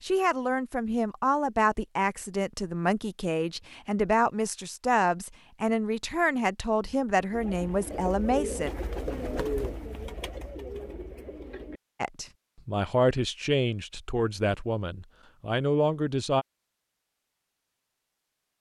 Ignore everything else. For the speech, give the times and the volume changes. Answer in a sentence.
You can hear the speech from 0.0 to 8.7 s, at a steady volume; and from 12.0 to 16.4 s, getting quieter then louder.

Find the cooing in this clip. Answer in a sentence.
The cooing can be heard from 7.3 to 11.8 s.